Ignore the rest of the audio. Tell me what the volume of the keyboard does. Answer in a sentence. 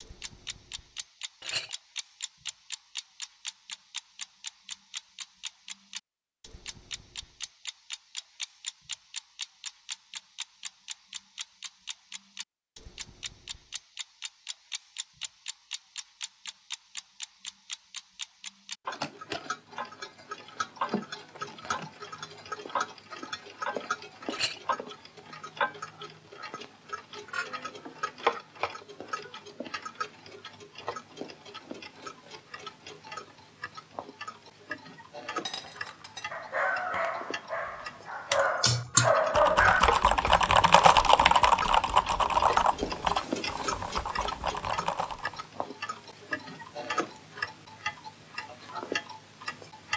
The volume of the keyboard goes down.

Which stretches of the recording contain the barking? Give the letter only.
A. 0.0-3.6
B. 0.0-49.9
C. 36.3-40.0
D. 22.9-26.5
C.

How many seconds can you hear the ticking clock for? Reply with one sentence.
The ticking clock can be heard for 50 seconds in total.